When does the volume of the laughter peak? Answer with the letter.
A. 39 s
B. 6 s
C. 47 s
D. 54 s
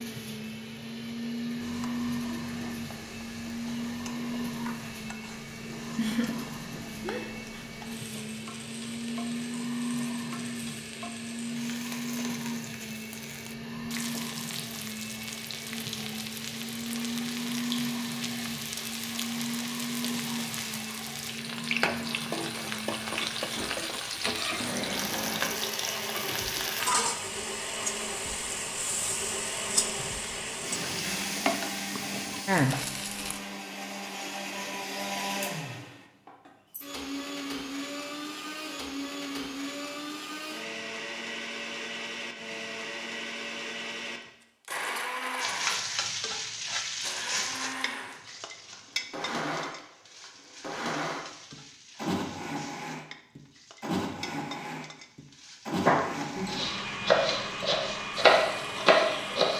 B.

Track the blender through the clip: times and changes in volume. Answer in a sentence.
You can hear the blender from 0.0 to 59.5 s, at a steady volume.